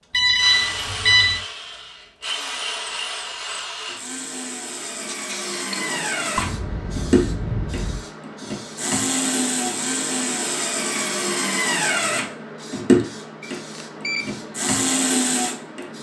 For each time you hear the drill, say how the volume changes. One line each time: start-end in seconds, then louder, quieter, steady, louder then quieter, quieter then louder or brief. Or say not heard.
0.3-15.9 louder.